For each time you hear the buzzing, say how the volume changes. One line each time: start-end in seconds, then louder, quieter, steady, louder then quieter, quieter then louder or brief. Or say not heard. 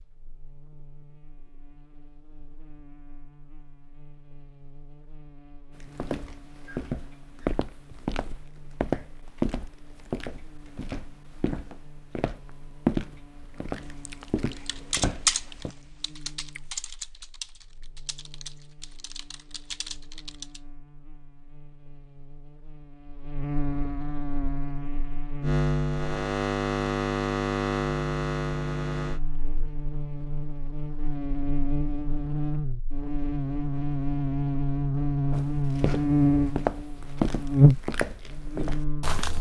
0.0-39.2 louder.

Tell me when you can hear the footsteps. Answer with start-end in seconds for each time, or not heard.
5.7-15.7, 35.3-39.3.